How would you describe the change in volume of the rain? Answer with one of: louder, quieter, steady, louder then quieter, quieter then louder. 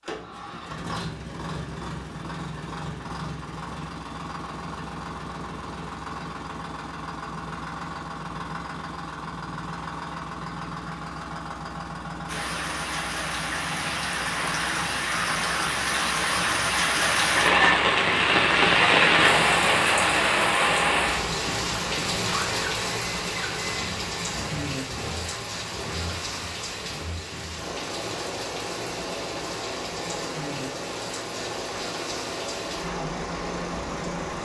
louder then quieter.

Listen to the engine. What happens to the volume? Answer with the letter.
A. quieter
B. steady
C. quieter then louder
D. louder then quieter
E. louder
B.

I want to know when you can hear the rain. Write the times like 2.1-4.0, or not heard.
12.2-34.4.